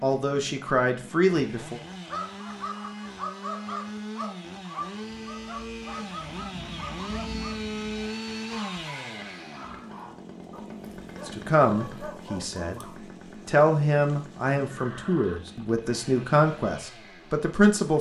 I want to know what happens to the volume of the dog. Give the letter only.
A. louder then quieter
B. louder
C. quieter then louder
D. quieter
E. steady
D.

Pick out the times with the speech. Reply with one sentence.
You can hear the speech from 0.0 to 1.8 s, from 11.2 to 12.8 s and from 13.4 to 17.9 s.